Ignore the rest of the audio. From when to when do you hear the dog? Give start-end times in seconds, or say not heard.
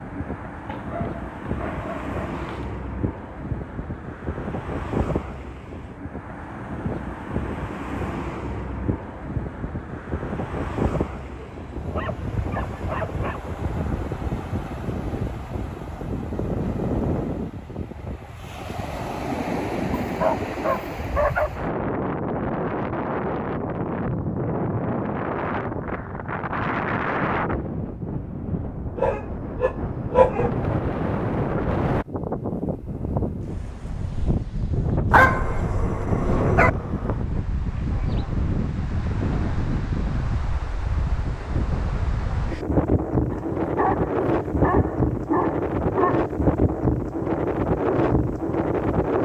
0.7-2.7, 11.3-13.4, 20.0-21.5, 28.9-30.5, 35.1-36.7, 43.3-46.2.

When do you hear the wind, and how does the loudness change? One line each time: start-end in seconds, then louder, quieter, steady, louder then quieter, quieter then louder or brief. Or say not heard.
0.0-49.2 louder.